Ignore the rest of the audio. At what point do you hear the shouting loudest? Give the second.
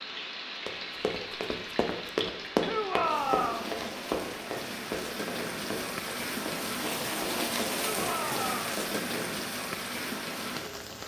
3 s.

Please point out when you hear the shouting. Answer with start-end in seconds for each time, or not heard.
2.6-3.7, 7.8-8.8.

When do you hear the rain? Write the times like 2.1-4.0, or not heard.
0.0-11.0.